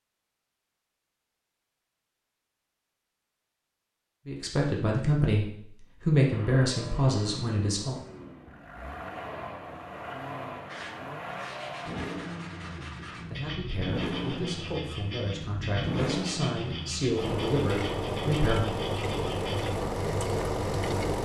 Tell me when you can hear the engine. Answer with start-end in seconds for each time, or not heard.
6.3-21.2.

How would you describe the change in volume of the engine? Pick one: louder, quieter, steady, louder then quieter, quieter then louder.
louder.